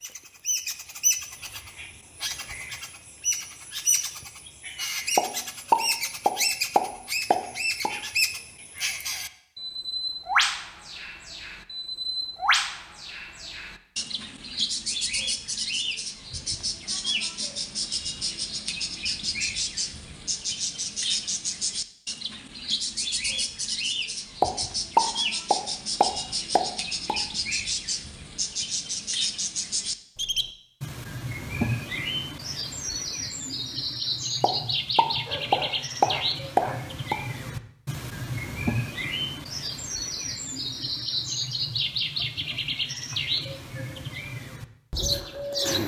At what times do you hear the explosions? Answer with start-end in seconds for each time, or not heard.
5.2-8.0, 24.4-27.2, 34.4-37.2.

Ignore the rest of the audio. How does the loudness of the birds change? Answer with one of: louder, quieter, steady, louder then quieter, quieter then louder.
steady.